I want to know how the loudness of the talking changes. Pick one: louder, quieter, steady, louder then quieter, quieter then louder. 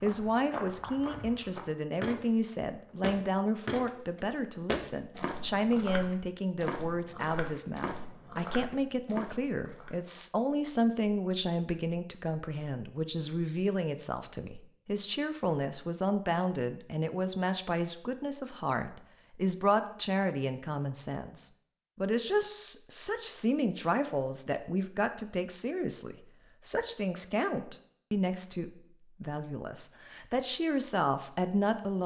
steady.